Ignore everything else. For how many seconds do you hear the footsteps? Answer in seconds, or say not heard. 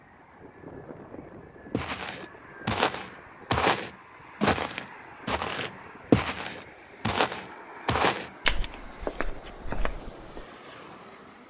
9 s.